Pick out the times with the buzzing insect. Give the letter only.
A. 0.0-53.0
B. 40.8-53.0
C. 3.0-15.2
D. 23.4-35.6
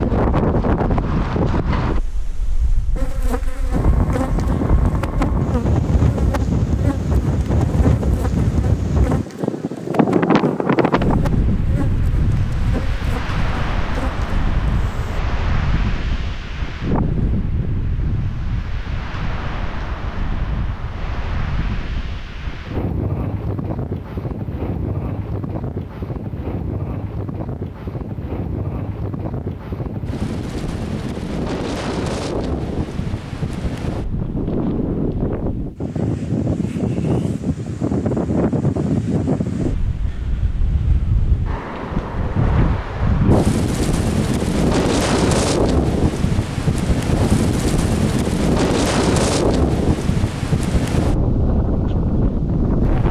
C.